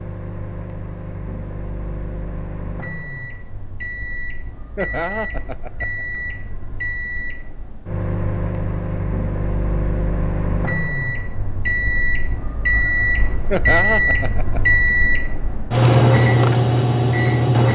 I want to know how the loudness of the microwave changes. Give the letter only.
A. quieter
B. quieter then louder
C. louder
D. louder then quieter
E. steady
C.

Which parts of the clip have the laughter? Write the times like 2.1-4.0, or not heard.
4.8-6.0, 13.5-14.9.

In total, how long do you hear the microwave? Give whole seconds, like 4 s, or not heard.
18 s.